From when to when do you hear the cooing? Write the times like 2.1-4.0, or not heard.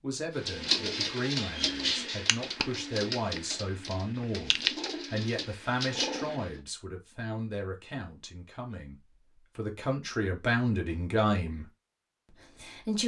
0.5-6.6.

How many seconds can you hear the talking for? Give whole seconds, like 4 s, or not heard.
12 s.